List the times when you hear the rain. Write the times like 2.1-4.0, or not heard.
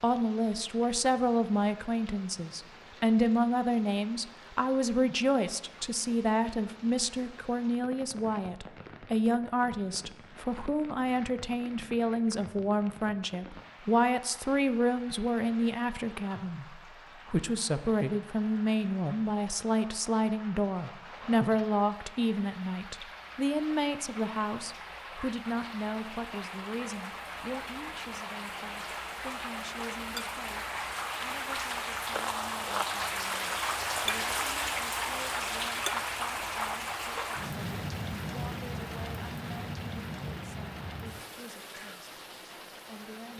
0.0-43.3.